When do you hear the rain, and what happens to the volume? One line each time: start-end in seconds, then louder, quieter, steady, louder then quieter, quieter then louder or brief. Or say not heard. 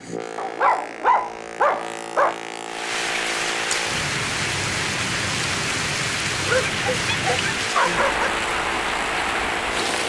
2.6-10.0 steady.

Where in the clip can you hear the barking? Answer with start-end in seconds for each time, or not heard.
0.3-2.4, 6.3-8.3.